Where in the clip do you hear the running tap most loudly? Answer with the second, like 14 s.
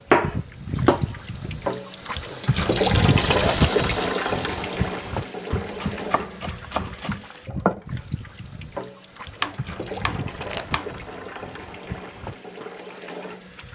3 s.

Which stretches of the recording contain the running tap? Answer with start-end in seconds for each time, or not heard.
0.0-13.7.